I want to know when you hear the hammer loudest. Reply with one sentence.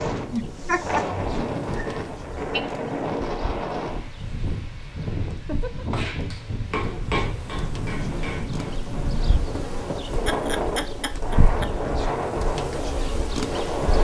The volume of the hammer peaks at 7 seconds.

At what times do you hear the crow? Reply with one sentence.
The crow can't be heard in this clip.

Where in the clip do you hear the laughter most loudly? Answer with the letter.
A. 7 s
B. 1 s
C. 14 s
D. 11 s
B.